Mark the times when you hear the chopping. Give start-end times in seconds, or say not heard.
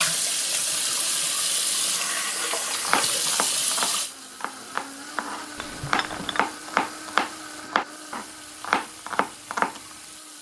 2.8-9.8.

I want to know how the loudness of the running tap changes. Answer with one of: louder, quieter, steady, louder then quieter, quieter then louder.
quieter.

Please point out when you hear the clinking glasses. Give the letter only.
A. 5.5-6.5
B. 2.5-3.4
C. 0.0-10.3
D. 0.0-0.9
A.